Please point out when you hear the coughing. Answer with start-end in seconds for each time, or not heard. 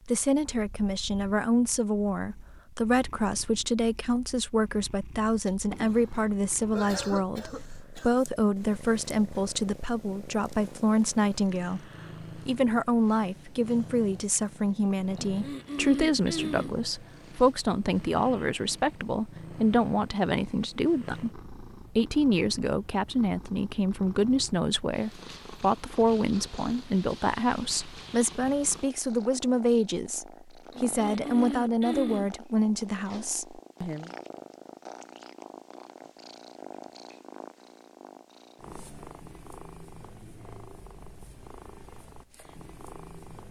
5.7-8.2, 15.2-16.8, 30.7-32.3.